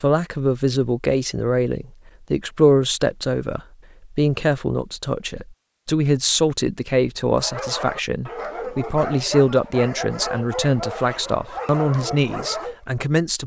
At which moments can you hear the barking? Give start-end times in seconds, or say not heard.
7.3-12.8.